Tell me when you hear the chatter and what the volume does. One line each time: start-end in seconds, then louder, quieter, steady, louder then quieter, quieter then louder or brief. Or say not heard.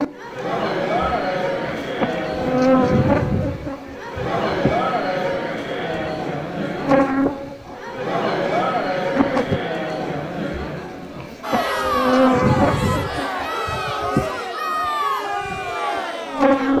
0.0-16.7 steady.